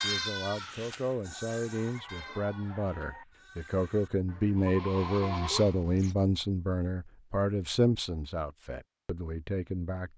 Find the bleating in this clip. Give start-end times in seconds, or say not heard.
0.0-6.2.